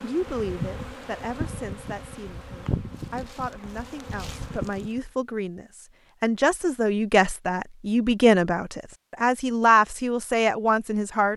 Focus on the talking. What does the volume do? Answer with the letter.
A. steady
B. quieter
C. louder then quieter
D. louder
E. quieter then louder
D.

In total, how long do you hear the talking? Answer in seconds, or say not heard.
11 s.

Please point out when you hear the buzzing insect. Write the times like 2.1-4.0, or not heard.
0.0-5.0.